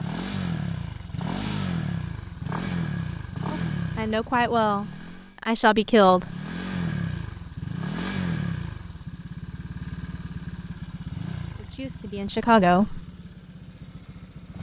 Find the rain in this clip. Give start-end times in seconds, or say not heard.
not heard.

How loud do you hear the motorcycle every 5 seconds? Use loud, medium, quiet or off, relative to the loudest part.
loud, loud, medium.